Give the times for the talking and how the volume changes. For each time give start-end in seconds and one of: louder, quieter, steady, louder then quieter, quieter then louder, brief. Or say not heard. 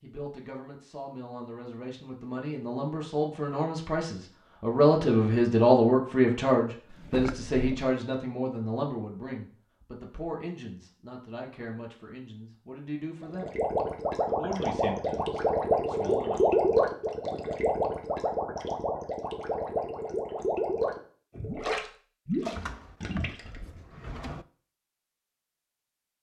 0.0-13.6 louder then quieter
14.2-16.6 brief.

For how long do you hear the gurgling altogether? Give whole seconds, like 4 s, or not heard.
10 s.